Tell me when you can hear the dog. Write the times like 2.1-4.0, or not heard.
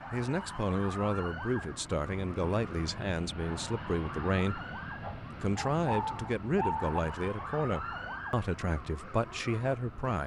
5.0-7.0.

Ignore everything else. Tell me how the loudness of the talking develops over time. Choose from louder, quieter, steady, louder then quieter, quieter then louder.
steady.